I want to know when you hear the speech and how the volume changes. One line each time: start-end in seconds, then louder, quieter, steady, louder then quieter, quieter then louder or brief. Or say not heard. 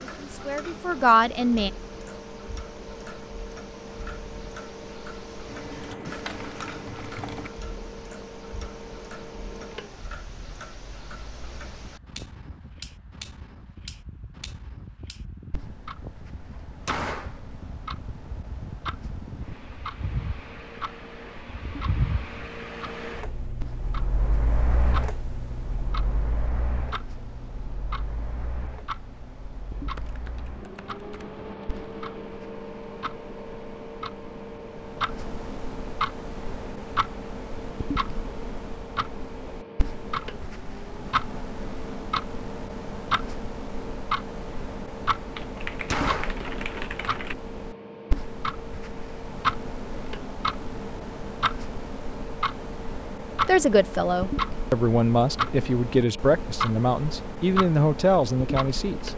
0.2-1.7 brief
53.5-59.1 steady.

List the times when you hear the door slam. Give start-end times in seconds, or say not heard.
16.6-17.4, 45.7-46.5.